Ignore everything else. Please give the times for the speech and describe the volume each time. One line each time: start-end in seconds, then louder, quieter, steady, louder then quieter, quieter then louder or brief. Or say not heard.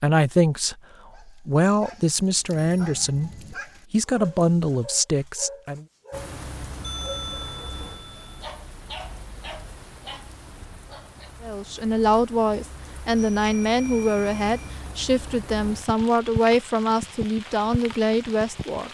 0.0-5.8 steady
11.4-18.8 steady.